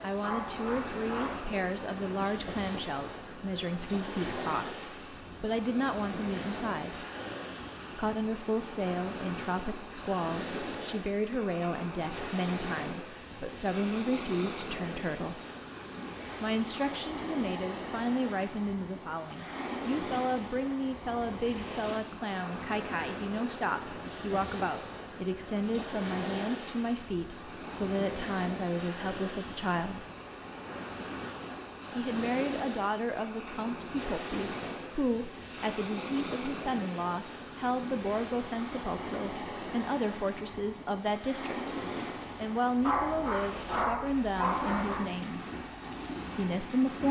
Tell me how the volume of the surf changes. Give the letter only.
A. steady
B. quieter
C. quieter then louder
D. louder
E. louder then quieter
A.